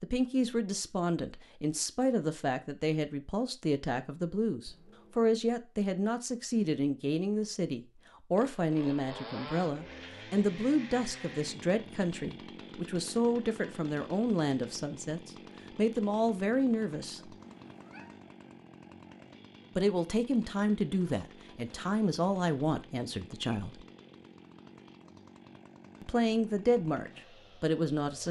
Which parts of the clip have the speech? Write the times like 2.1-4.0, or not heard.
0.0-17.4, 19.8-23.9, 26.0-28.2.